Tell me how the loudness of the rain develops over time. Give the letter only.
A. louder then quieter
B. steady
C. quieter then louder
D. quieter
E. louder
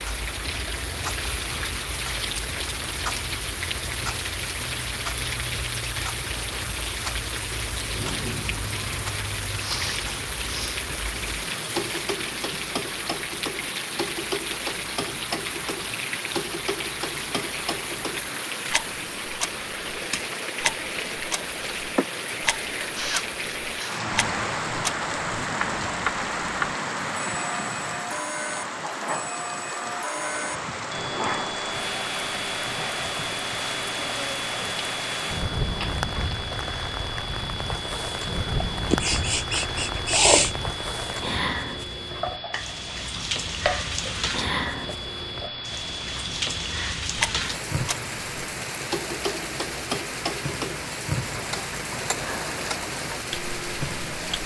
B.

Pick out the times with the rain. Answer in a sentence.
You can hear the rain from 0.0 to 54.4 s.